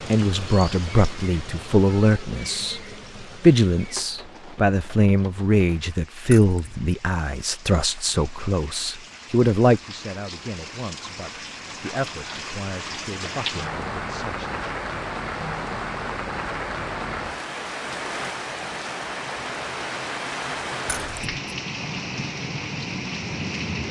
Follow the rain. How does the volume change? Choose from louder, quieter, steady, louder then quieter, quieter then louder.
quieter then louder.